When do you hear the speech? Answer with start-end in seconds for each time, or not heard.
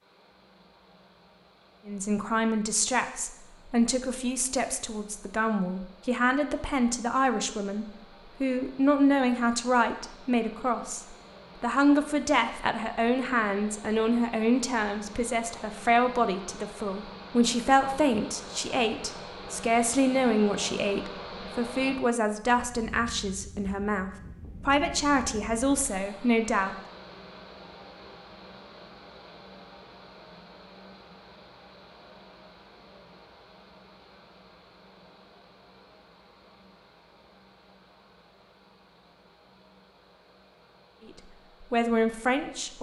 1.9-26.8, 41.0-42.7.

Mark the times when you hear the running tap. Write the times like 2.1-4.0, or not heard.
not heard.